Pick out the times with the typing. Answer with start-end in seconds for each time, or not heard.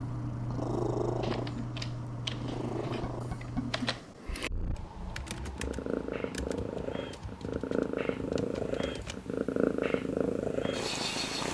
1.0-9.4.